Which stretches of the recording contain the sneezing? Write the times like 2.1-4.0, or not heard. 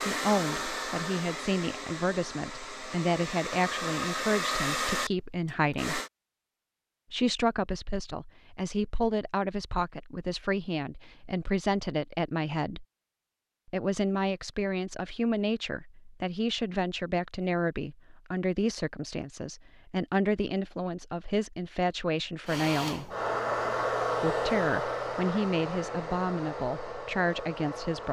not heard.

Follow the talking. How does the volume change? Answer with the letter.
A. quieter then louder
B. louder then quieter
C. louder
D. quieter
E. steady
E.